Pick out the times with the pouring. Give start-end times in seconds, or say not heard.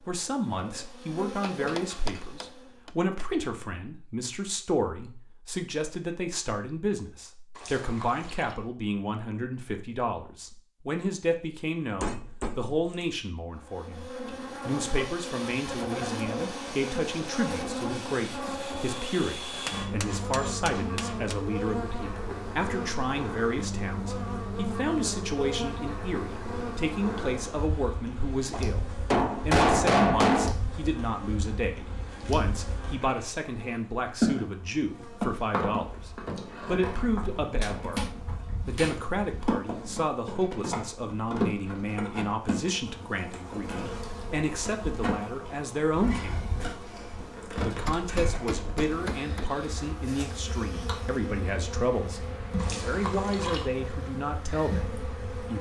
7.5-8.6, 52.5-53.7.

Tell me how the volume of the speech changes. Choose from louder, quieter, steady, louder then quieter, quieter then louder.
steady.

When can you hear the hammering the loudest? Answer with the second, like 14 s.
30 s.